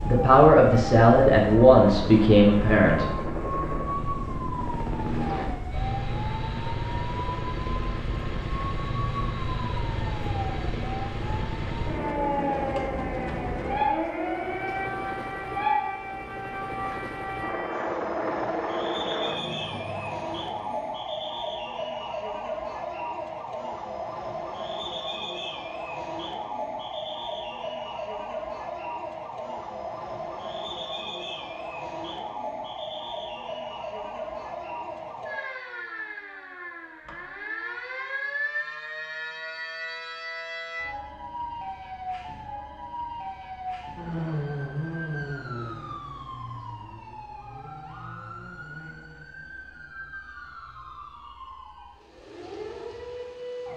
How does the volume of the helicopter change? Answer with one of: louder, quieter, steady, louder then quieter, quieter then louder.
steady.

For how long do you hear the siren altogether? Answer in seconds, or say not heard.
54 s.